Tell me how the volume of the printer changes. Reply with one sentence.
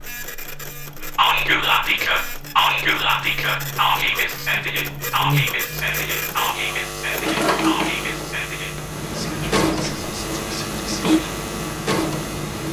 The loudness of the printer goes up.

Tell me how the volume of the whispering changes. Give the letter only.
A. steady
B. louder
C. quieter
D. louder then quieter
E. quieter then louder
C.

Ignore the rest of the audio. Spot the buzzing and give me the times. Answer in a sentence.
The buzzing can be heard from 0.0 to 12.6 s.